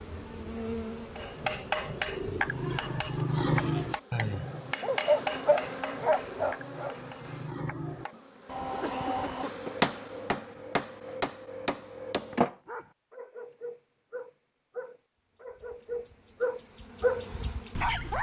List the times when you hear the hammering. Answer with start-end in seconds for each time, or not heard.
1.1-12.6.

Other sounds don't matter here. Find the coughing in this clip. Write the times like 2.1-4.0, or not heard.
8.1-9.8.